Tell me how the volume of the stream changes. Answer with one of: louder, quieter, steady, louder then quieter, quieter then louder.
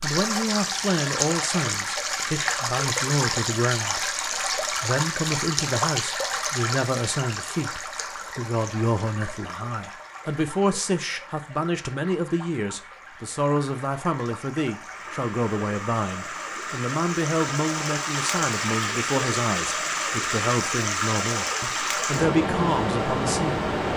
quieter then louder.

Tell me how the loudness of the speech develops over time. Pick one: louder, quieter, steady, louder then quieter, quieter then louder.
steady.